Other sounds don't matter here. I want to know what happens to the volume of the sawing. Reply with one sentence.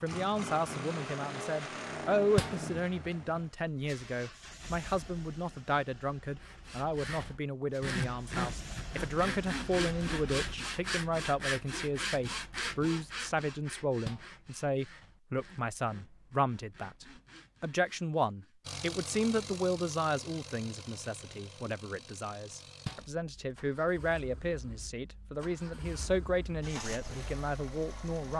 The loudness of the sawing goes down.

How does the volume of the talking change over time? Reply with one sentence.
The volume of the talking stays about the same.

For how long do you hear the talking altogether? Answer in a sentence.
You can hear the talking for 28 seconds altogether.